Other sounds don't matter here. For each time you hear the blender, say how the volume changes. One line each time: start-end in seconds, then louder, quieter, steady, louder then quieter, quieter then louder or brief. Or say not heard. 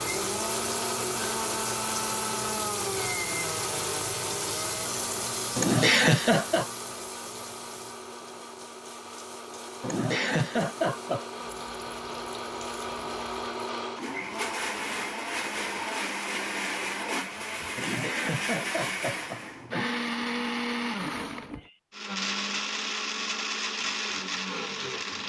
0.0-25.2 quieter then louder.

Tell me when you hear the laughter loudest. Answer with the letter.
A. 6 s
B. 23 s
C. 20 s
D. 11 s
A.